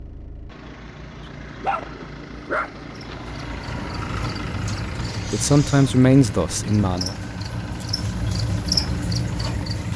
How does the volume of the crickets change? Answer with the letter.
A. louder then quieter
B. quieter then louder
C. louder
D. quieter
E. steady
C.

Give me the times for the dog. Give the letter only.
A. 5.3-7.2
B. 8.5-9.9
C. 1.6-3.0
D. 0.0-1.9
C.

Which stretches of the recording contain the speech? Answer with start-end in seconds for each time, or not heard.
5.3-7.2.